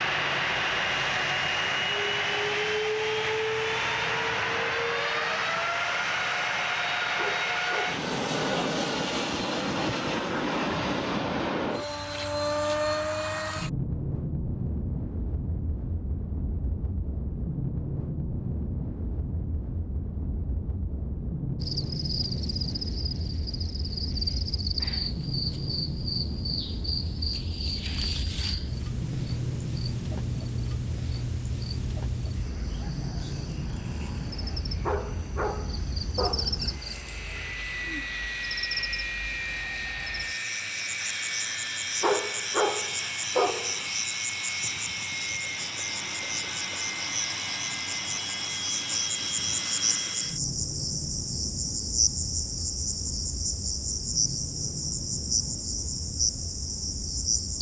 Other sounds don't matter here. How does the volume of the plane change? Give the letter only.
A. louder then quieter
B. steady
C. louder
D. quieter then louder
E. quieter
E.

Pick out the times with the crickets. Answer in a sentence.
You can hear the crickets from 21.6 to 57.5 s.